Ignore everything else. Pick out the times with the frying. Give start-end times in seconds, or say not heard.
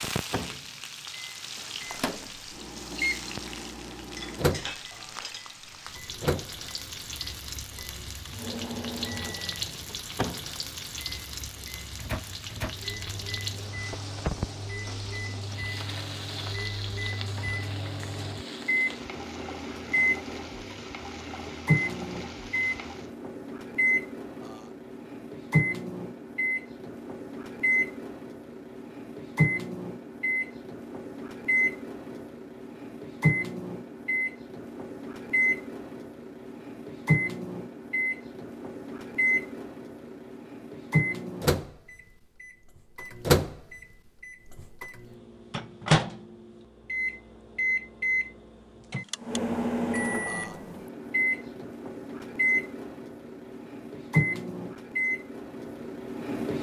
0.0-23.1.